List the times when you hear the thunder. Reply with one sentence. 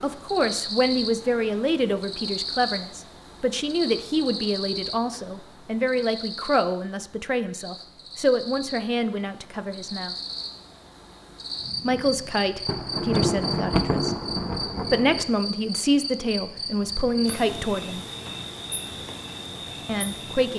The thunder can be heard from 12.7 to 15.2 s.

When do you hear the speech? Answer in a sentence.
The speech can be heard from 0.0 to 10.2 s, from 11.8 to 14.2 s, from 14.9 to 18.0 s and from 19.9 to 20.5 s.